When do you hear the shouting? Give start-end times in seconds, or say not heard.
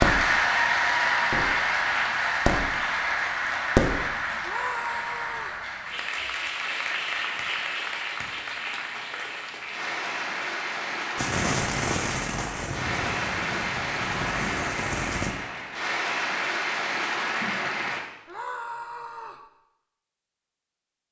4.4-5.6, 18.2-19.4.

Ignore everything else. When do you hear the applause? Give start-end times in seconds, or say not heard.
0.0-18.0.